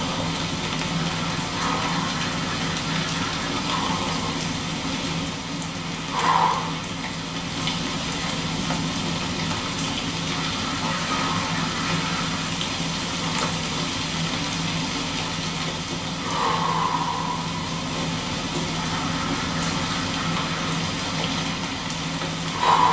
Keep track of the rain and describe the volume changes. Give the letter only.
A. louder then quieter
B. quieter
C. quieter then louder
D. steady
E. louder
D.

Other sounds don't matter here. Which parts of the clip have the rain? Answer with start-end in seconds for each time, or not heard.
0.0-22.8.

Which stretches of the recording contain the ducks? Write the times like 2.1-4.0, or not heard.
0.9-3.6, 10.4-12.4, 18.8-20.9.